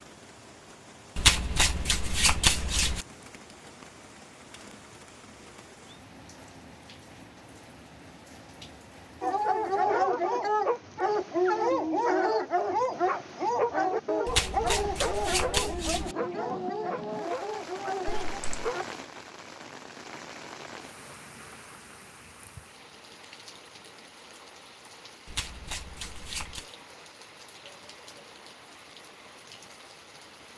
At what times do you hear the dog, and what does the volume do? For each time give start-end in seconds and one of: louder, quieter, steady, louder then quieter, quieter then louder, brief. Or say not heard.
9.2-18.9 quieter.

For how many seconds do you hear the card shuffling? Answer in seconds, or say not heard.
5 s.